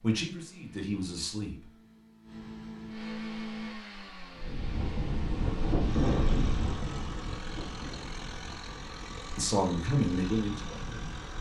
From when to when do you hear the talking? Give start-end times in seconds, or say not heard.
0.0-1.6, 9.3-11.2.